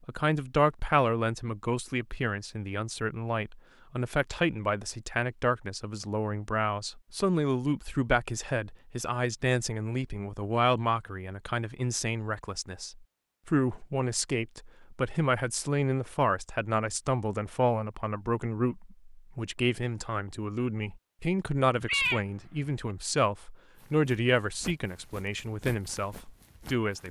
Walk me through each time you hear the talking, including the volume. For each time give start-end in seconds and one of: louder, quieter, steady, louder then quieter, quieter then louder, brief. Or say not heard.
0.1-27.0 steady.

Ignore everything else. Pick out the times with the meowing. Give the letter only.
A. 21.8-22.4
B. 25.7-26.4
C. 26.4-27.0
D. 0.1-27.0
A.